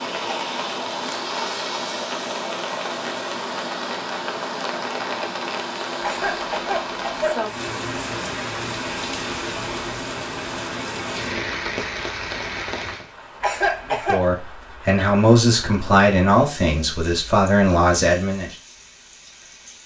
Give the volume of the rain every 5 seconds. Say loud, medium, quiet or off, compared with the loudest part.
loud, loud, loud, quiet.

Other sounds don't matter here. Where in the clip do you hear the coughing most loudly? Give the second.
14 s.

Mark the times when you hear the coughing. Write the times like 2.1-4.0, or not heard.
6.0-7.5, 13.4-14.2.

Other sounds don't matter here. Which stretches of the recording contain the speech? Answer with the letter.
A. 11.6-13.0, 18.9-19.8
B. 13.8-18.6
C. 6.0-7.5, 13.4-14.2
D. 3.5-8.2
B.